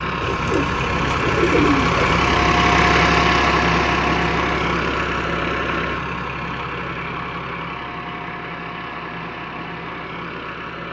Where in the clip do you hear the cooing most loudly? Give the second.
2 s.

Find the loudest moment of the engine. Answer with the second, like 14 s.
3 s.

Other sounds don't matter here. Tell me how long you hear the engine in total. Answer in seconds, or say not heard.
11 s.